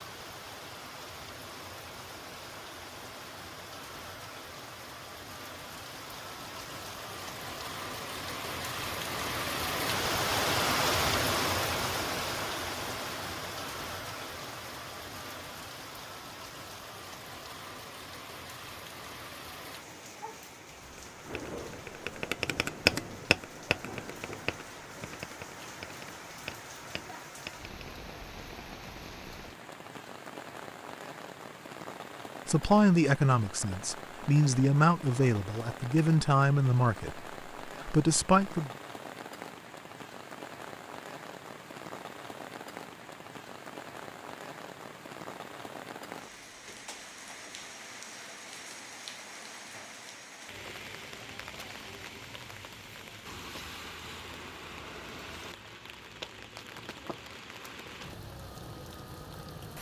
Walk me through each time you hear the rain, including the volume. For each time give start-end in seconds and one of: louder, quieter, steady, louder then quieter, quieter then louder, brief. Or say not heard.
0.0-59.7 quieter.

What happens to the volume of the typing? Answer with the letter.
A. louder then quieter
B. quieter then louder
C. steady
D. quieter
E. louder
A.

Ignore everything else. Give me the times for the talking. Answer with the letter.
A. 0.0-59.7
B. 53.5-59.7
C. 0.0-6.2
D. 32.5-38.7
D.